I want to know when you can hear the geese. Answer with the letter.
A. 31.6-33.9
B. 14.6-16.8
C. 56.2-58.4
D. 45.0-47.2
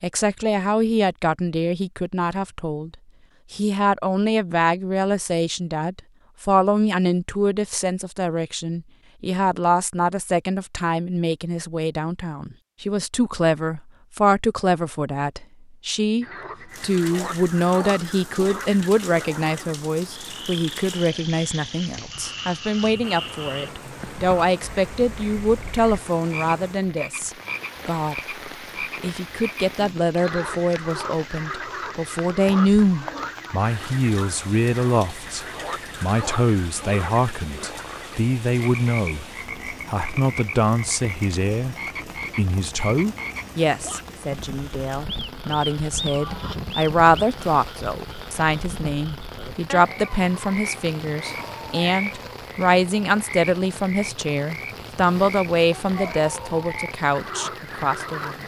D.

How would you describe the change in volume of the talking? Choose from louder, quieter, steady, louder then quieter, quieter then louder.
steady.